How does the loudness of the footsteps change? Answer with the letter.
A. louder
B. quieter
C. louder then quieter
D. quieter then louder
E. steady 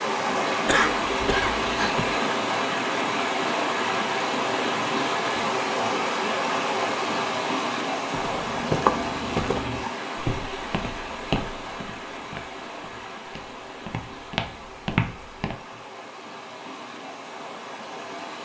D.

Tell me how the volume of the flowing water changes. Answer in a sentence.
The volume of the flowing water goes down.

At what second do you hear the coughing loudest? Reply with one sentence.
The volume of the coughing peaks at 1 second.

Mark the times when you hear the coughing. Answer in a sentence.
The coughing can be heard from 0.7 to 2.2 s.